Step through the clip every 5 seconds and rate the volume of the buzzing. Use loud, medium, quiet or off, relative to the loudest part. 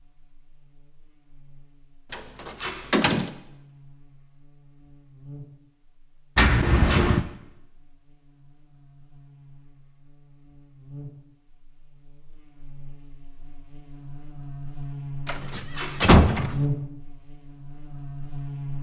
quiet, quiet, medium, loud.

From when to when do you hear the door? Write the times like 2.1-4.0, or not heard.
2.1-3.3, 6.3-7.2, 15.2-16.6.